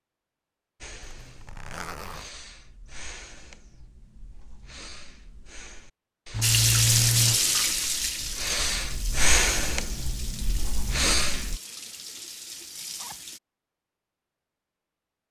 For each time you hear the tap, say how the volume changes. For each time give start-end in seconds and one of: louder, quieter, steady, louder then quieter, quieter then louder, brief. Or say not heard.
6.4-13.4 quieter.